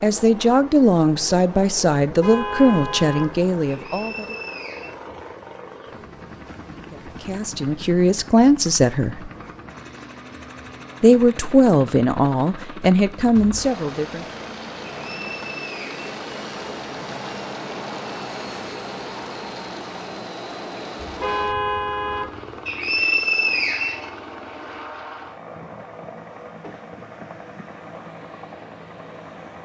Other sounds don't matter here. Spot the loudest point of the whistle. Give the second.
23 s.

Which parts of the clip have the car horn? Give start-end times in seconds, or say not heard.
2.0-3.4, 21.0-22.4.